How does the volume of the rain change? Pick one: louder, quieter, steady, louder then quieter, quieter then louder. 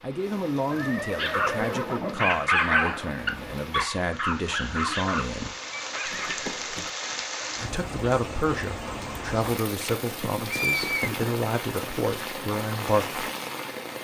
louder.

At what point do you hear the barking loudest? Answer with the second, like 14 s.
3 s.